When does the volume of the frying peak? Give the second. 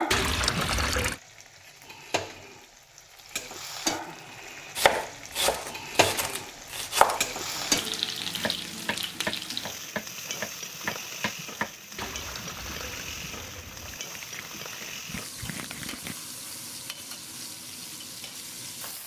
8 s.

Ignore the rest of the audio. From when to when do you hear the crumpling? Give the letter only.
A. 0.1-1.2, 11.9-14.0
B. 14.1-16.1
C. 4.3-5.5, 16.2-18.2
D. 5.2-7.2
B.